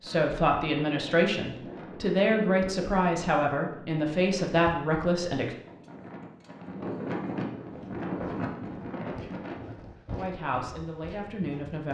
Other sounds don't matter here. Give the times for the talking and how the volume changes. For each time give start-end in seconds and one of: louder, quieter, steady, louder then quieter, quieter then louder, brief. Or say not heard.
0.0-5.5 steady
10.2-11.8 brief.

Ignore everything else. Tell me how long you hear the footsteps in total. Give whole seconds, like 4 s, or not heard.
4 s.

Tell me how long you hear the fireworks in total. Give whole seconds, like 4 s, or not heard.
not heard.